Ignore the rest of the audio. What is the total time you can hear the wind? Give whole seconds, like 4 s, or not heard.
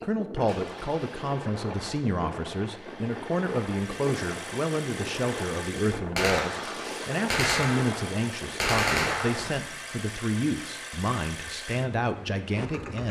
10 s.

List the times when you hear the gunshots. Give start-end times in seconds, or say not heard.
6.2-9.6.